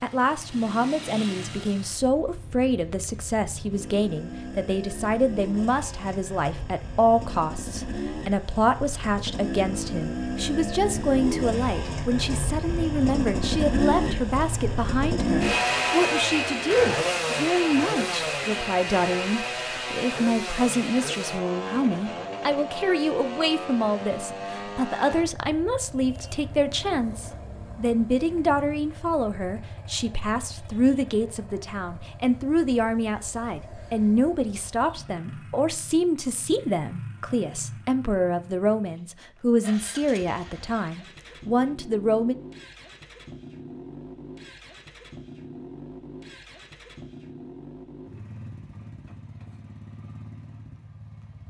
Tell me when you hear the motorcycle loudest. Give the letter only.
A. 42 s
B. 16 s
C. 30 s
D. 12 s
B.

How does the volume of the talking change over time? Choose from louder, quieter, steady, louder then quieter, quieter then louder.
steady.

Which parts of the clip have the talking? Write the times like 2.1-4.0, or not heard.
0.0-42.4.